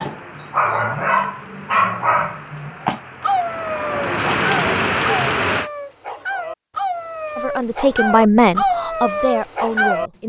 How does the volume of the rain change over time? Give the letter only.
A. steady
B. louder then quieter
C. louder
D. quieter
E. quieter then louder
C.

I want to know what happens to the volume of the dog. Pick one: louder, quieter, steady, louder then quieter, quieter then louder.
quieter then louder.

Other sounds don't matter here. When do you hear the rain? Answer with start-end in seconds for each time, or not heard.
0.0-5.7.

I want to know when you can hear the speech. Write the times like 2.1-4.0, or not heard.
7.3-10.2.